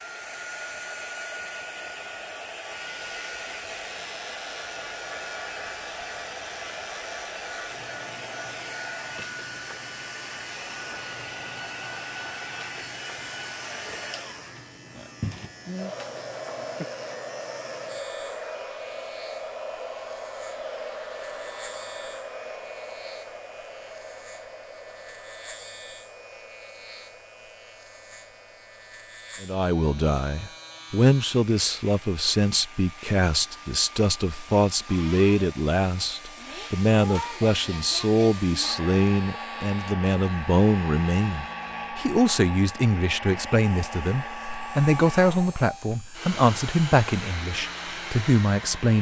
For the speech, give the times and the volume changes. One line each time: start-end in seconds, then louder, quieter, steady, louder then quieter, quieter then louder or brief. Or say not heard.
29.4-48.9 steady.